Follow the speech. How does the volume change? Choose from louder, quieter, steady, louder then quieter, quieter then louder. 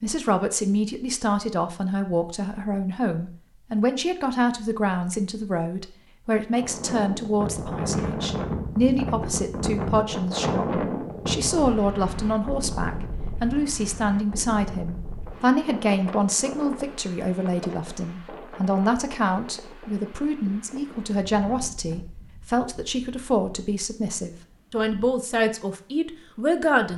steady.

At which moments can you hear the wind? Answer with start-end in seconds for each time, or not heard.
6.5-26.9.